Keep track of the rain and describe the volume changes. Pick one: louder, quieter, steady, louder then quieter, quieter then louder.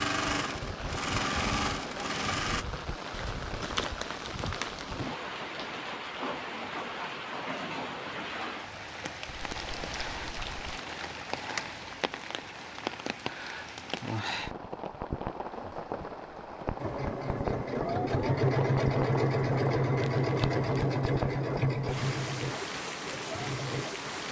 steady.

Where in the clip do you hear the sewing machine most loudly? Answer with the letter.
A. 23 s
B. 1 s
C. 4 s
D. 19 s
D.